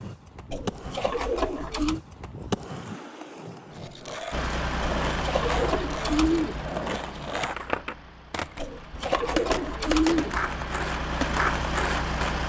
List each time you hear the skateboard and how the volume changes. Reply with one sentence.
You can hear the skateboard from 0.0 to 12.4 s, getting louder.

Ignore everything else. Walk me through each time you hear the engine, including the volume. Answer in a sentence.
The engine can be heard from 4.3 to 12.4 s, getting quieter then louder.